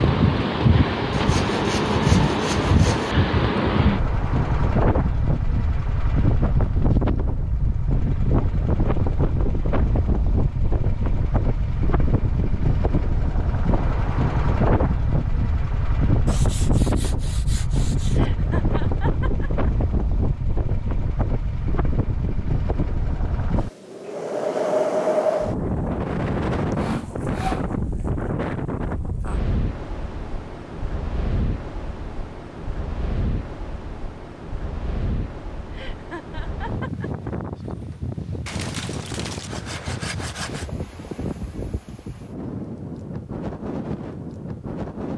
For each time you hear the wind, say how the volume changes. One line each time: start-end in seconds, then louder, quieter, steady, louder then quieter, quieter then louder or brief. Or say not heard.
0.0-45.1 quieter.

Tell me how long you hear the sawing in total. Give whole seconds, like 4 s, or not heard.
7 s.